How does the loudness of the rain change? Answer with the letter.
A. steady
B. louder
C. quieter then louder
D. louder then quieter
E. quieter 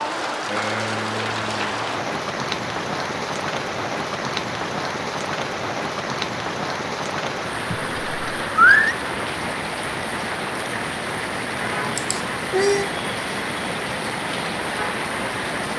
A.